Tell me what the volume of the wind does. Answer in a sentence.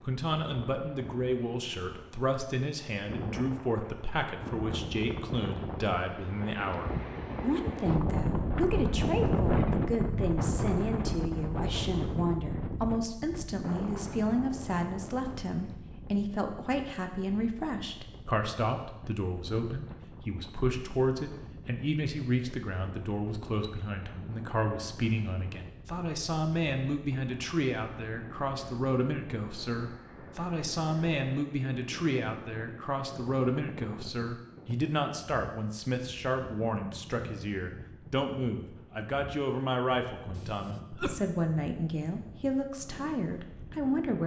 The loudness of the wind goes down.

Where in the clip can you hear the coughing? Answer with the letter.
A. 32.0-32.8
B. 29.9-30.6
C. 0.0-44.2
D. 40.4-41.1
D.